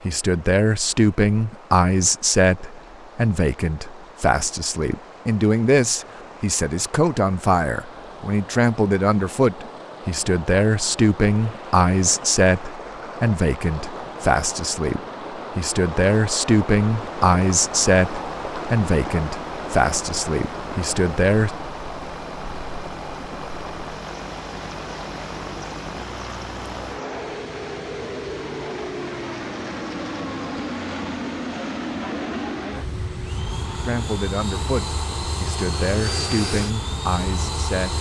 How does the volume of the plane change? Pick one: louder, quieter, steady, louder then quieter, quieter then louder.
louder.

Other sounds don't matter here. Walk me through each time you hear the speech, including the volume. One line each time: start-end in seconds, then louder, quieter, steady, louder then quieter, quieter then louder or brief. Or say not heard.
0.0-21.5 steady
33.9-37.9 quieter then louder.